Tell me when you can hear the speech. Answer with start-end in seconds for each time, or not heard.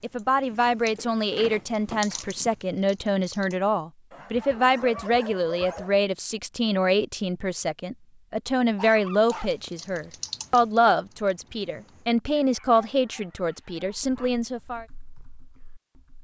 0.0-14.8.